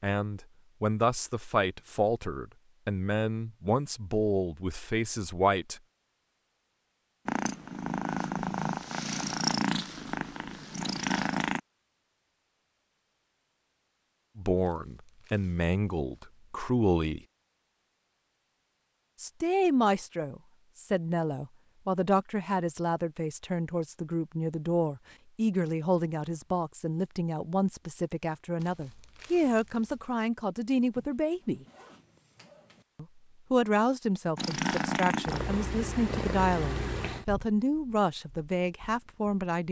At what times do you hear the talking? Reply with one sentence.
The talking can be heard from 0.0 to 5.8 s, from 14.3 to 17.2 s, from 19.2 to 31.6 s and from 33.0 to 39.6 s.